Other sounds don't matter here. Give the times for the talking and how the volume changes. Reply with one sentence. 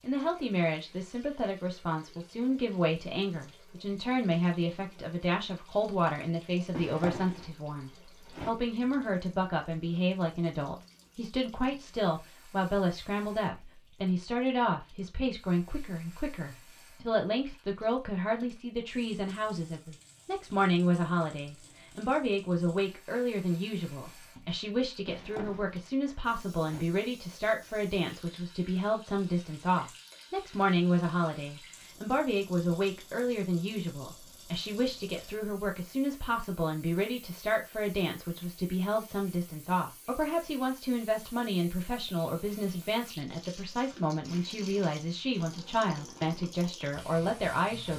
The talking can be heard from 0.0 to 47.9 s, at a steady volume.